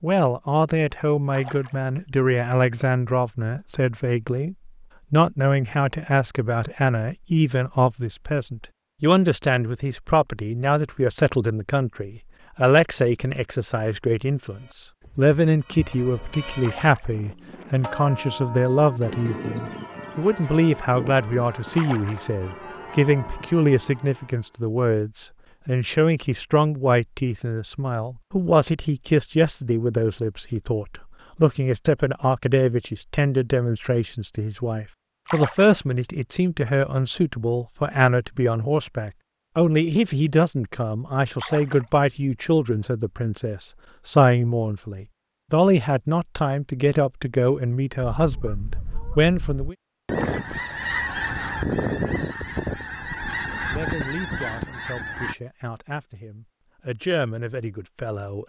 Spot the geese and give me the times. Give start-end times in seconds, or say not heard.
48.1-55.4.